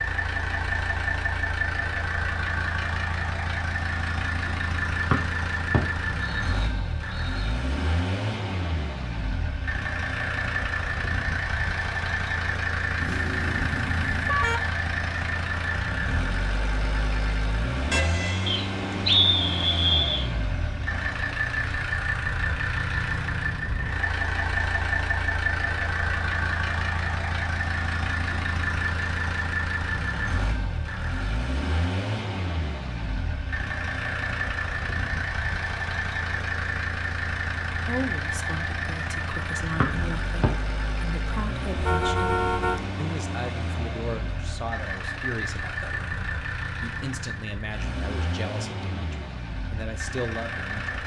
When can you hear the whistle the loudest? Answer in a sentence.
The loudest moment of the whistle is at 19 seconds.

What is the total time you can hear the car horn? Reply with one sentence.
You can hear the car horn for 4 seconds altogether.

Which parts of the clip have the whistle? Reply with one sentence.
You can hear the whistle from 5.1 to 7.5 s, from 18.4 to 20.2 s and from 39.8 to 40.5 s.